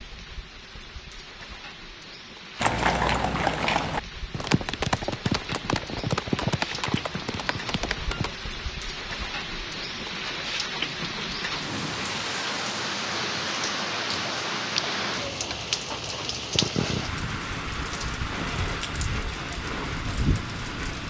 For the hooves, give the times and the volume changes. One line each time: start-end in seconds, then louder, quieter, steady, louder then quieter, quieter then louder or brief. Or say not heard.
2.5-8.3 quieter.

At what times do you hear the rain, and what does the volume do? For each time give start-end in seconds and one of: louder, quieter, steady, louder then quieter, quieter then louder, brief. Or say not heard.
0.0-21.0 louder.